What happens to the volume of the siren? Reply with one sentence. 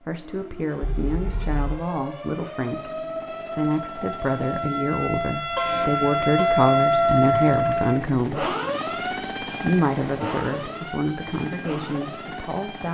The loudness of the siren goes up, then down.